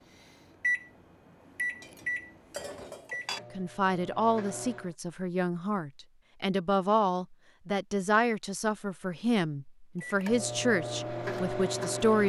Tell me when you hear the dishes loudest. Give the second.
3 s.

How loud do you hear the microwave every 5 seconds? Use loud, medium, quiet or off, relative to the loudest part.
loud, off, loud.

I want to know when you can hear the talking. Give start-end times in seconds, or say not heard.
3.5-12.2.